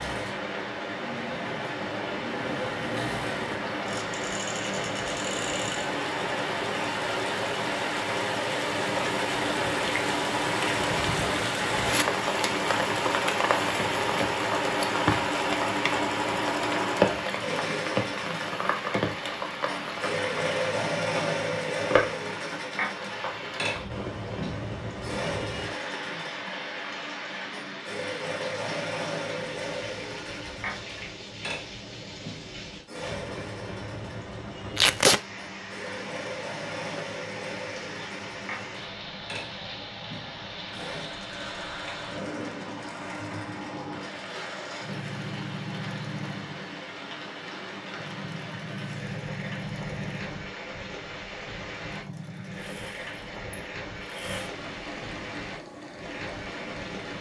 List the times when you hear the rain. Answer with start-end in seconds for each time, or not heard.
0.0-57.1.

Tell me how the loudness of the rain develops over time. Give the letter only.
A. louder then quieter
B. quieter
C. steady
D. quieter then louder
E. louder
B.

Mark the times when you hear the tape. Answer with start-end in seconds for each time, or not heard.
34.8-35.2.